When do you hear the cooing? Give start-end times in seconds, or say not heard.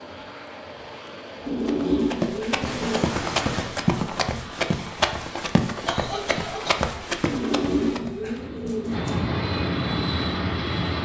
1.4-3.1, 7.2-9.2.